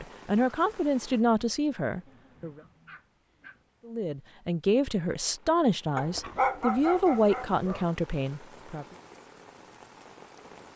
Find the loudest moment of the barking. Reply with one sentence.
The volume of the barking peaks at 7 seconds.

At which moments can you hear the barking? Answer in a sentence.
You can hear the barking from 1.9 to 3.6 s and from 6.0 to 7.8 s.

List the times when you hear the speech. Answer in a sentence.
You can hear the speech from 0.0 to 2.6 s and from 3.9 to 8.8 s.